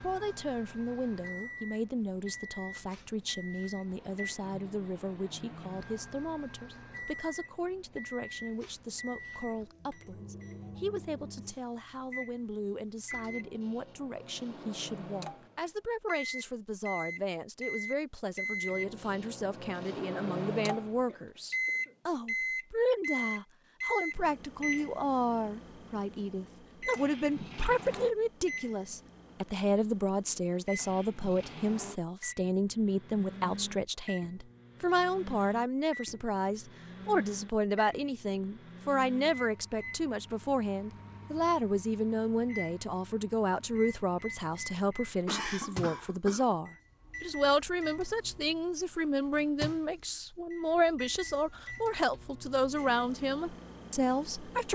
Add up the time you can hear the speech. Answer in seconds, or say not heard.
55 s.